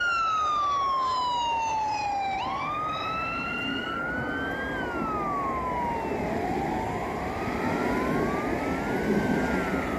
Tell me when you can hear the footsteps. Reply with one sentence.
The footsteps can't be heard in this clip.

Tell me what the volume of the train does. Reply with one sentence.
The loudness of the train goes up.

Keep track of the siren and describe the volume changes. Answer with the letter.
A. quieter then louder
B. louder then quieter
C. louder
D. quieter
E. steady
D.